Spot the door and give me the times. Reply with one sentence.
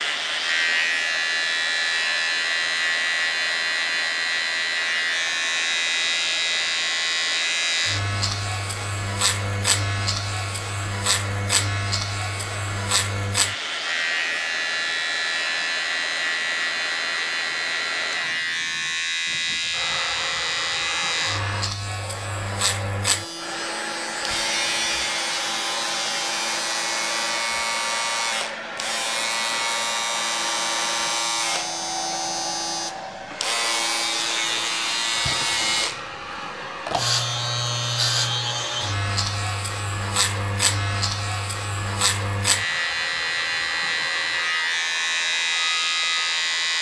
You can't hear the door here.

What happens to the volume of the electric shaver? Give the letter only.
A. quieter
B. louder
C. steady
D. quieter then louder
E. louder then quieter
C.